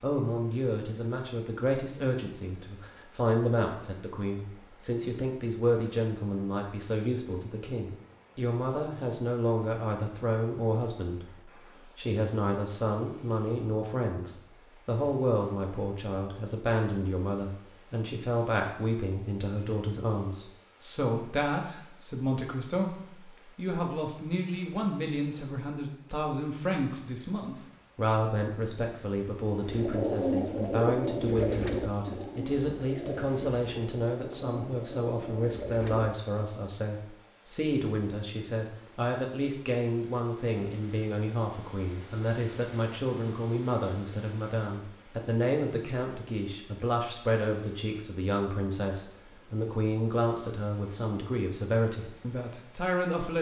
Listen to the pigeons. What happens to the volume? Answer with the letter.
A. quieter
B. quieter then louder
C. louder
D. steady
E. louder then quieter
A.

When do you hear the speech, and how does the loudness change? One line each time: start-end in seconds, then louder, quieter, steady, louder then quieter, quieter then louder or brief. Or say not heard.
0.0-53.3 steady.